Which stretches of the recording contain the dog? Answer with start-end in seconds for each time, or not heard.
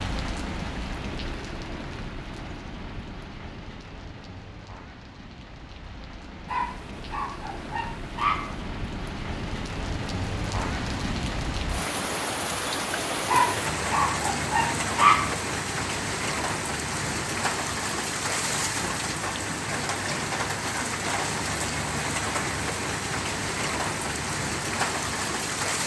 6.5-8.7, 13.2-15.3.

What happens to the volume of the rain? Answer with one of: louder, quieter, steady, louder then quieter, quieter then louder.
louder.